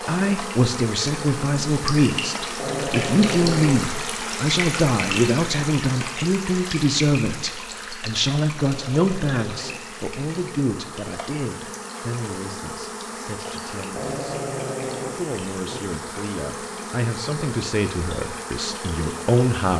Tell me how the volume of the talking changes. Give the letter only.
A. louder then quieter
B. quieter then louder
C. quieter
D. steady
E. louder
B.